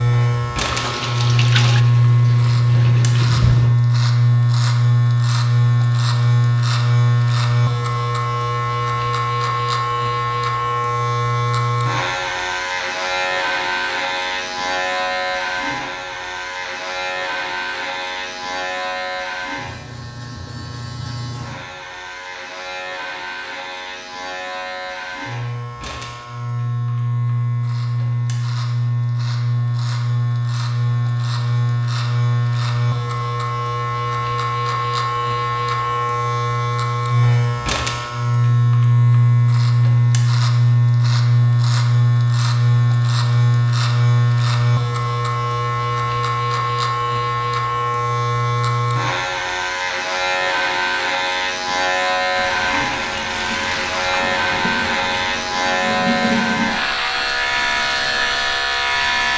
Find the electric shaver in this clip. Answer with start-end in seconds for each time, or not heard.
0.0-59.3.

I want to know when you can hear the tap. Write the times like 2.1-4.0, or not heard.
0.2-3.8, 52.4-59.3.